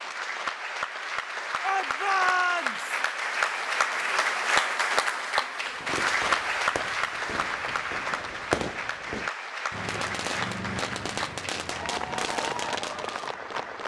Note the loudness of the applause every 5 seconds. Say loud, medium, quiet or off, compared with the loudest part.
loud, loud, medium.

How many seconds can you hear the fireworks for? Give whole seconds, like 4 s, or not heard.
8 s.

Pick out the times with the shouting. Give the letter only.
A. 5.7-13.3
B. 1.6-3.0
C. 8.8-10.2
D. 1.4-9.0
B.